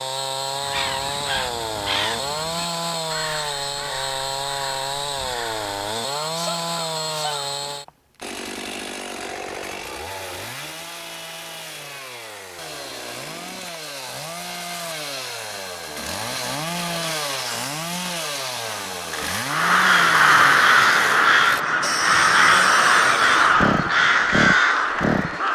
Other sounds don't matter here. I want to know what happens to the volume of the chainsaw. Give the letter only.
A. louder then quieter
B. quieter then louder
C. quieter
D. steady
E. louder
B.